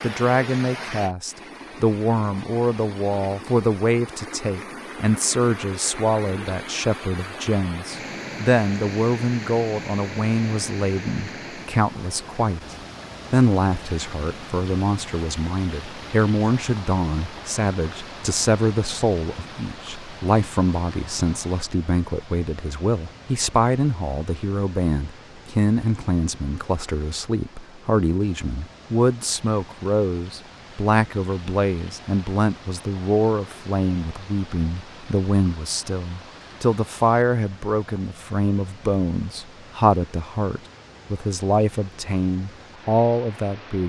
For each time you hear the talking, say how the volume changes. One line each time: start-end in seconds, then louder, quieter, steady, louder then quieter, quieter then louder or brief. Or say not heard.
0.0-12.6 steady
13.3-43.8 steady.